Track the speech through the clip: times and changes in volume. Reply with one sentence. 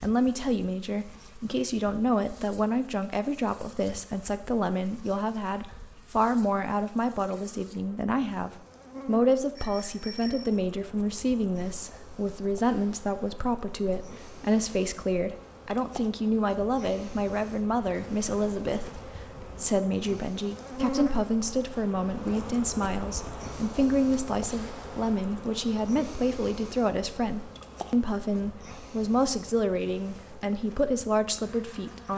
The speech can be heard from 0.0 to 32.1 s, at a steady volume.